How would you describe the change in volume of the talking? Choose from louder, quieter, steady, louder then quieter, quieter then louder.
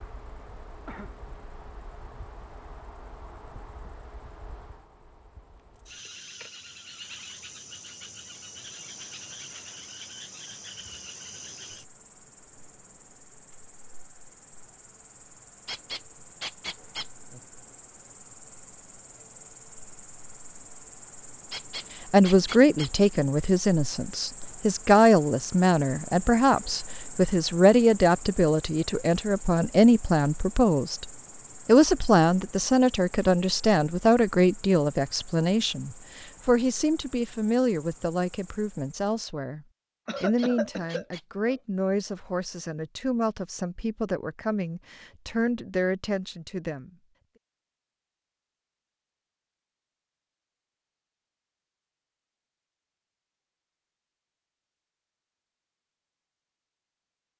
quieter.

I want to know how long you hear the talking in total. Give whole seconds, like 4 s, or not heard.
24 s.